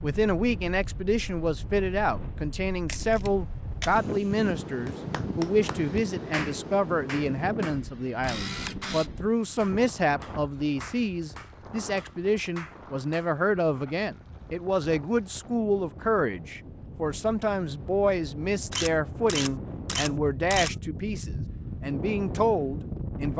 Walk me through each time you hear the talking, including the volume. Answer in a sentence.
You can hear the talking from 0.0 to 23.3 s, at a steady volume.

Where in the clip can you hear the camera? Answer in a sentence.
You can hear the camera from 2.9 to 4.5 s, from 8.2 to 9.1 s and from 18.7 to 20.7 s.